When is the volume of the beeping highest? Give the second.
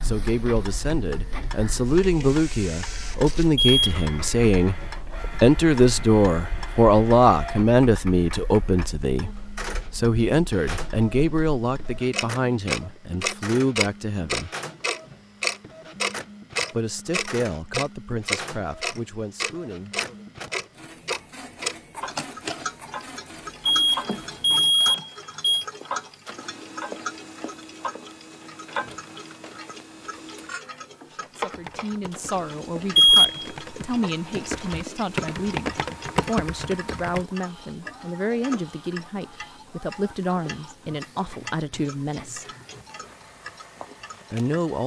33 s.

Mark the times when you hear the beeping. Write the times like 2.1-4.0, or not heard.
3.5-4.0, 23.6-25.6, 33.0-33.5.